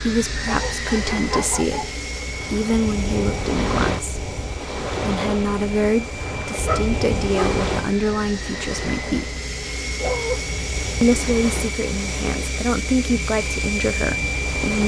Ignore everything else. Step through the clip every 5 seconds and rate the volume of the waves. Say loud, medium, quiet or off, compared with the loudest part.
loud, loud, medium.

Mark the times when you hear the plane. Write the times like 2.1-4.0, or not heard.
0.0-14.8.